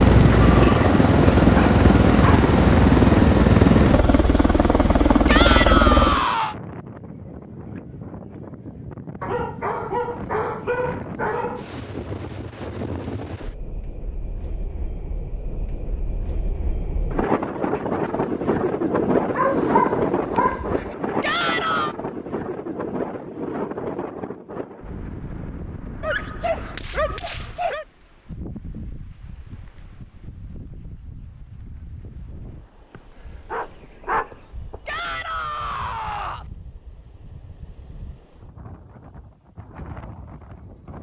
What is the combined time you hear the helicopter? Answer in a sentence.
The helicopter can be heard for 6 seconds in total.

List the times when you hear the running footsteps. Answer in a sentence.
The running footsteps can't be heard in this clip.